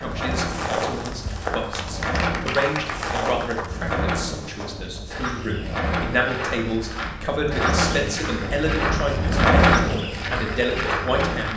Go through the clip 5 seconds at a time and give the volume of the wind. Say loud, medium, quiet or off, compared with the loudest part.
medium, loud, medium.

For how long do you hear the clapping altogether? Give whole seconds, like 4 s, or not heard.
2 s.